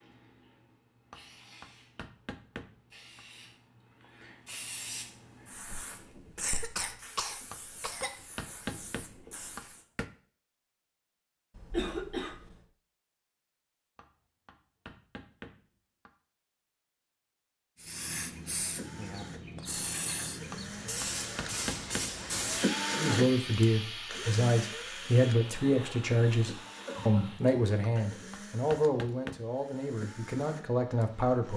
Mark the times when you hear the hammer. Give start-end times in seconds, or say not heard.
1.1-3.2, 7.5-10.1, 13.9-16.1, 20.5-22.1, 27.8-29.4.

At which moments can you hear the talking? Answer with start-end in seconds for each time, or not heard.
22.9-31.5.